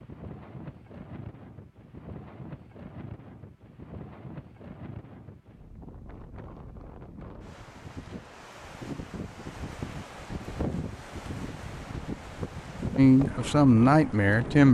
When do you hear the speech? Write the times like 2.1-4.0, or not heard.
12.9-14.7.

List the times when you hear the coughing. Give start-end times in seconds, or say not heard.
not heard.